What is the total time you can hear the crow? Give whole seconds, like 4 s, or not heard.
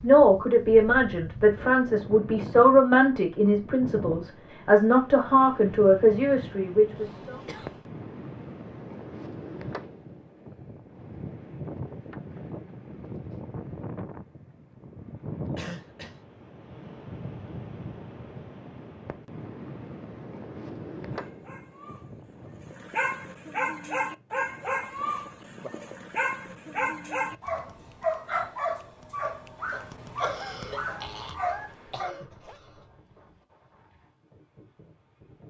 not heard.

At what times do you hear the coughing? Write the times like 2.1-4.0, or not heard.
7.0-7.8, 15.6-16.2, 30.2-32.6.